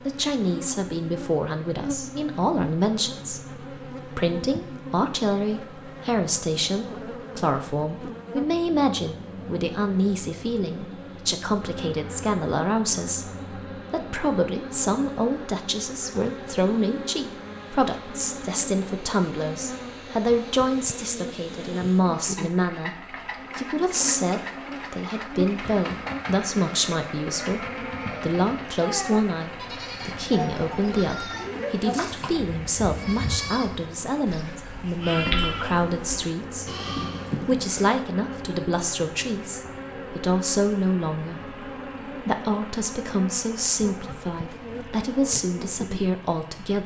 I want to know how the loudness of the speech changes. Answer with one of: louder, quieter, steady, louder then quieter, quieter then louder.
steady.